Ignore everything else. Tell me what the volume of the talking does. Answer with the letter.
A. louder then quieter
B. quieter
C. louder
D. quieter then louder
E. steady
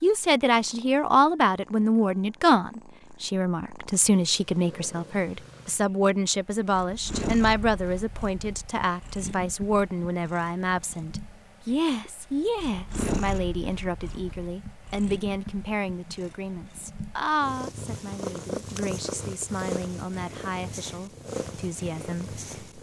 B.